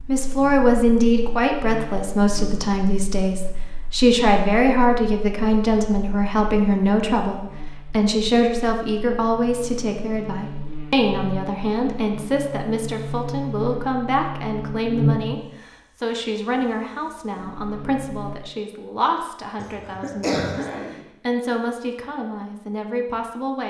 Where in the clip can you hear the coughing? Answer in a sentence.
The coughing can be heard from 19.6 to 21.0 s.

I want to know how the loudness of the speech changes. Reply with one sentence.
The loudness of the speech goes down.